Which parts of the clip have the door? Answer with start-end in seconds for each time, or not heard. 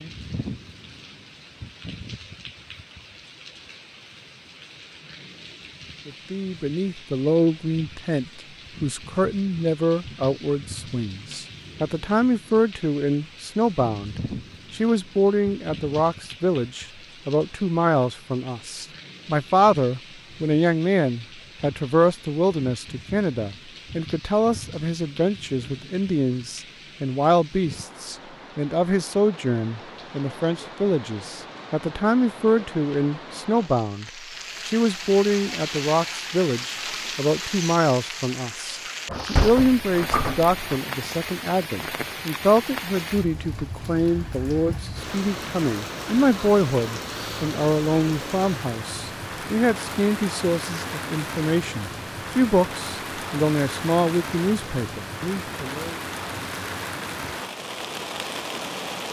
39.0-40.8.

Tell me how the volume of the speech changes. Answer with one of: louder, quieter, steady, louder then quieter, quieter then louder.
steady.